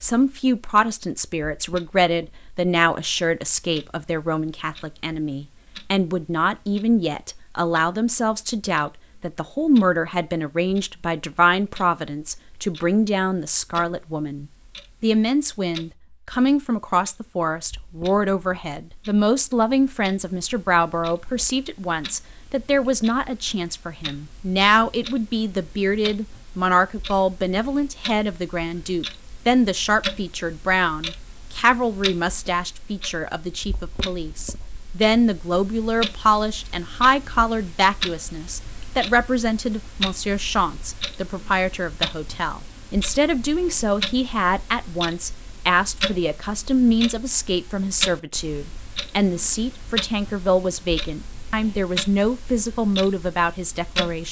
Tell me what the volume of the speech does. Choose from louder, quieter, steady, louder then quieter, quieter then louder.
steady.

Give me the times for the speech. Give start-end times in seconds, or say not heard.
0.0-54.2.